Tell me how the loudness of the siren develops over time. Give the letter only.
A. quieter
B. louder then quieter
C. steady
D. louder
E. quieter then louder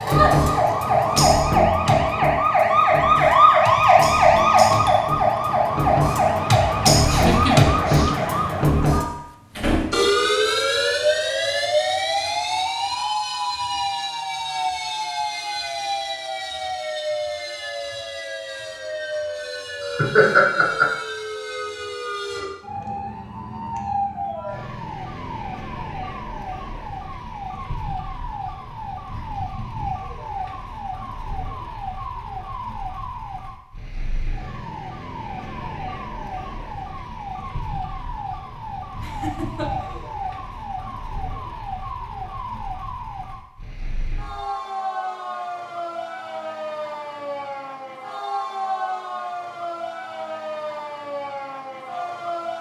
A.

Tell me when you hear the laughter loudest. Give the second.
20 s.